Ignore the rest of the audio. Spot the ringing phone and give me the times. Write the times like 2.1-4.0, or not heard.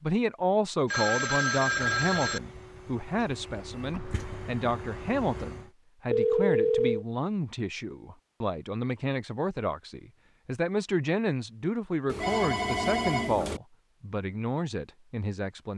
0.9-2.4, 6.1-7.0, 12.1-13.6.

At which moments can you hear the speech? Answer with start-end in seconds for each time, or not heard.
0.0-15.7.